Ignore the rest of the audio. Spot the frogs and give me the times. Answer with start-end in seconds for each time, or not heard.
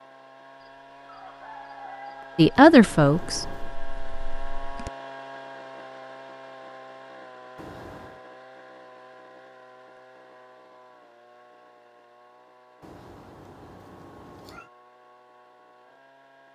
not heard.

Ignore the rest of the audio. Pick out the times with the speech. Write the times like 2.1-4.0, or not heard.
2.4-4.7.